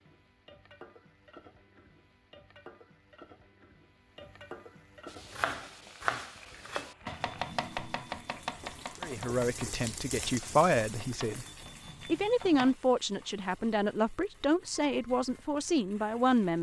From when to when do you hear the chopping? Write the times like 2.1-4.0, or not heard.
5.0-12.8.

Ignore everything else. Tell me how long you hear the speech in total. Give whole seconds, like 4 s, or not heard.
7 s.